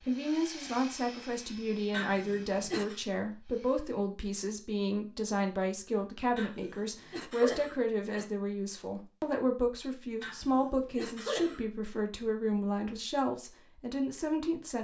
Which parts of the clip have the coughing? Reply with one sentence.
You can hear the coughing from 1.9 to 3.0 s, from 6.3 to 8.3 s and from 10.2 to 11.7 s.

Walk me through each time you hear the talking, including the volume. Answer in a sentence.
The talking can be heard from 0.0 to 14.7 s, at a steady volume.